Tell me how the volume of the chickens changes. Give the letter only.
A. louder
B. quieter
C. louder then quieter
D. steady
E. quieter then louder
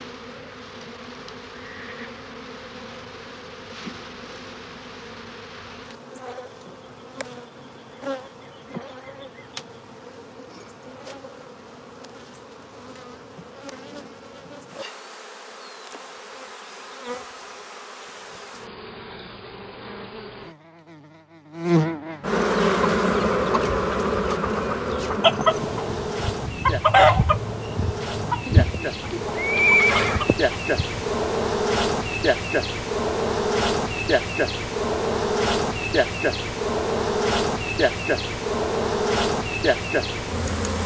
C.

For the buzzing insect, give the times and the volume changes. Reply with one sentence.
You can hear the buzzing insect from 0.0 to 40.8 s, getting louder.